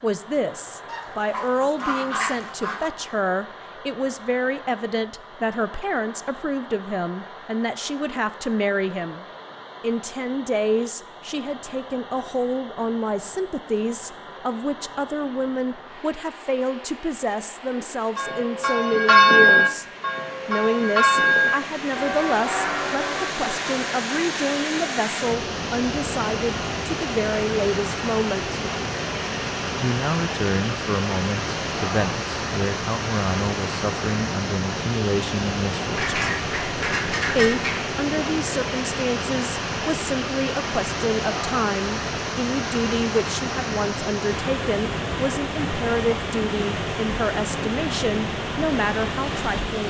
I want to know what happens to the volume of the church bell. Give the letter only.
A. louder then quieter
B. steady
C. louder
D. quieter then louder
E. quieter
E.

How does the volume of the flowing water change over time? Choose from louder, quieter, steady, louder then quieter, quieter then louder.
louder.